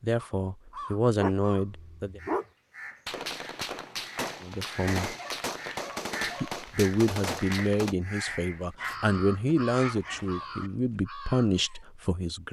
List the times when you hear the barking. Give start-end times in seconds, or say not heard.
1.2-2.5, 5.2-6.7, 8.8-10.7.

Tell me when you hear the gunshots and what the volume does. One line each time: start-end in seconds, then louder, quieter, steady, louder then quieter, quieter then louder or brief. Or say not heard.
3.0-8.0 steady.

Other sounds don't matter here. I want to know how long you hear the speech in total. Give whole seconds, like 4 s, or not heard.
9 s.